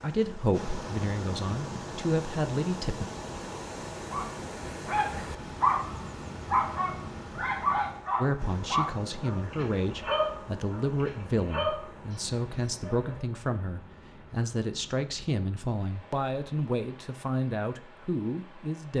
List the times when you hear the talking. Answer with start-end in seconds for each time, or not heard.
0.0-3.0, 8.2-18.9.